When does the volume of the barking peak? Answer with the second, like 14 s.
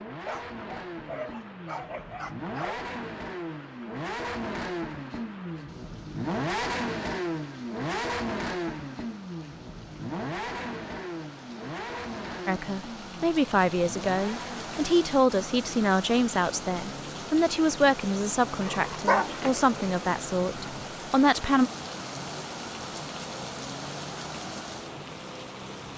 19 s.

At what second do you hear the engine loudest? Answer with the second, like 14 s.
7 s.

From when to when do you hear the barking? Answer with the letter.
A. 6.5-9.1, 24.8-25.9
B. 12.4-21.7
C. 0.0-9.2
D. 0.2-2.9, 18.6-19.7
D.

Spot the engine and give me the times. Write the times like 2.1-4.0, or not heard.
0.0-25.9.